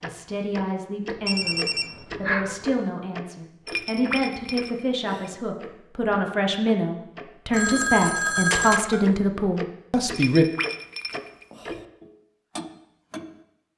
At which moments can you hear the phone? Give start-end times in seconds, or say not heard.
1.2-2.5, 7.5-9.1.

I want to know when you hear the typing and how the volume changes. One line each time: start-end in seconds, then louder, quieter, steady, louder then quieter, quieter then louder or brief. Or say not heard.
not heard.